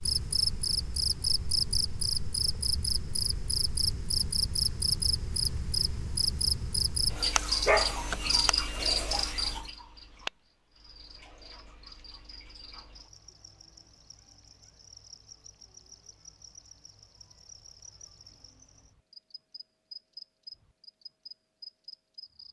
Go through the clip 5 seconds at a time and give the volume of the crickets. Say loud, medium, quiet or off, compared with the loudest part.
loud, loud, quiet, quiet, quiet.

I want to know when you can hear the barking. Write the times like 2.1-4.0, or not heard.
7.7-8.4.